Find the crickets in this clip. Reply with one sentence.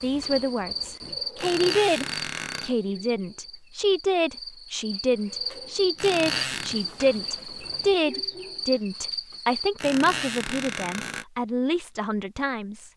The crickets can be heard from 0.0 to 9.8 s.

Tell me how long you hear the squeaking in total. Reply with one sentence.
The squeaking can be heard for 4 seconds in total.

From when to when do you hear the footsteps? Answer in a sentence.
You can't hear the footsteps here.